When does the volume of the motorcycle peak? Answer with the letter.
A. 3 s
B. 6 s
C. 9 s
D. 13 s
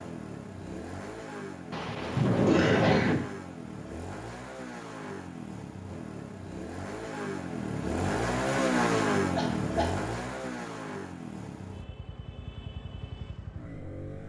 C.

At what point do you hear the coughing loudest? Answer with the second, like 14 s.
3 s.